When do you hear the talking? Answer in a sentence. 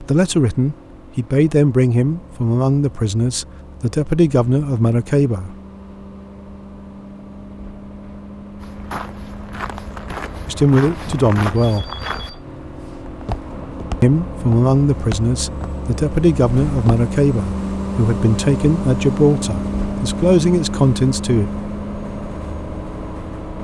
You can hear the talking from 0.0 to 5.5 s, from 10.4 to 11.8 s and from 14.0 to 21.4 s.